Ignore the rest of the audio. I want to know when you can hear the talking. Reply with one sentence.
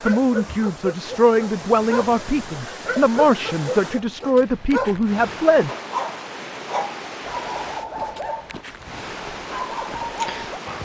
The talking can be heard from 0.0 to 5.7 s.